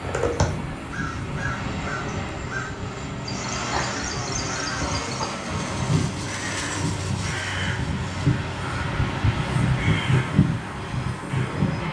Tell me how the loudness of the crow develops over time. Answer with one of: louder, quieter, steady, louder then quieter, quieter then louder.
louder.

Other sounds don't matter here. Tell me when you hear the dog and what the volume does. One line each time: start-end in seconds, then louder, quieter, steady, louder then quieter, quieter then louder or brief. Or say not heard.
not heard.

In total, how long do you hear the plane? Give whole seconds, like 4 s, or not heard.
12 s.